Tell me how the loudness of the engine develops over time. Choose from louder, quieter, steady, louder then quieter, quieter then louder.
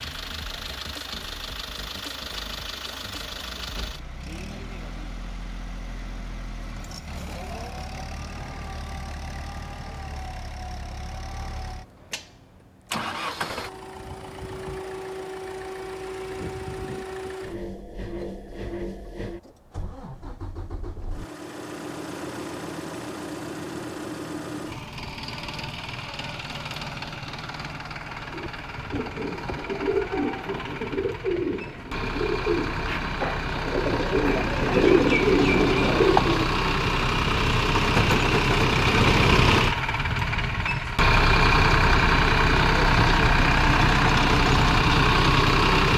louder.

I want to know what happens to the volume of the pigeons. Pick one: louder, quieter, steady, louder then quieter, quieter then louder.
louder.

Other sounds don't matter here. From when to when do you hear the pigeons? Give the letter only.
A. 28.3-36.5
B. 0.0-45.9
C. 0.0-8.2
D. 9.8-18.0
A.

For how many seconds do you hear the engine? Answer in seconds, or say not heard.
46 s.